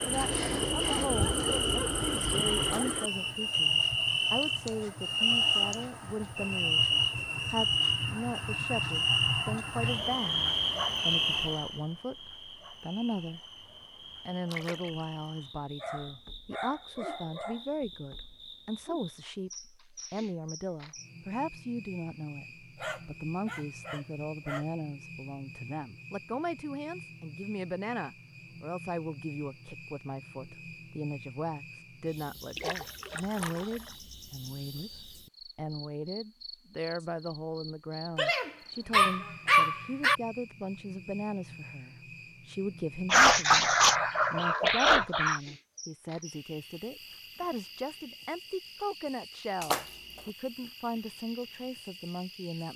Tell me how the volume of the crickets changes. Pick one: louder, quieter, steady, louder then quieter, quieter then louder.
quieter.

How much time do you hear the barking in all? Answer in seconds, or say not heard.
11 s.